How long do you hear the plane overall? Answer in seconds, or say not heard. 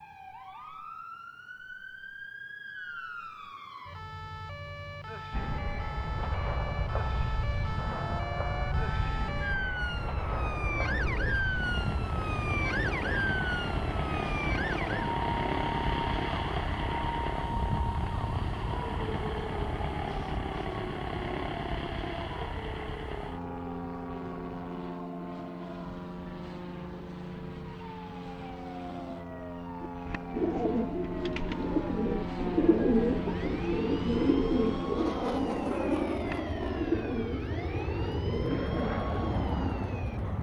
35 s.